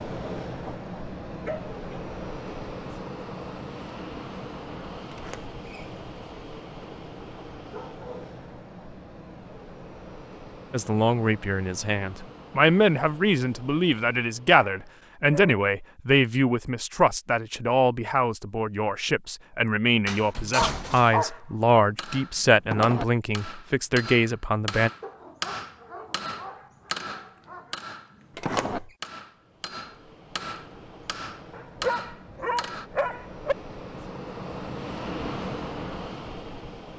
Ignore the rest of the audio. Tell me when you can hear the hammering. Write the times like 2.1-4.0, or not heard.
21.9-32.9.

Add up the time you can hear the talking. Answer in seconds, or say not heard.
14 s.